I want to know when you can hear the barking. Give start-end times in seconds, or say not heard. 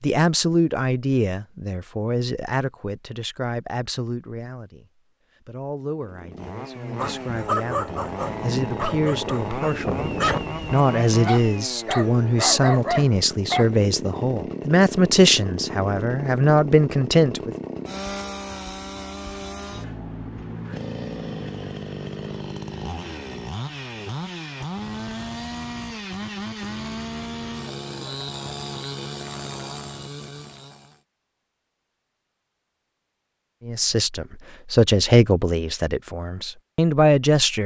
7.0-13.7.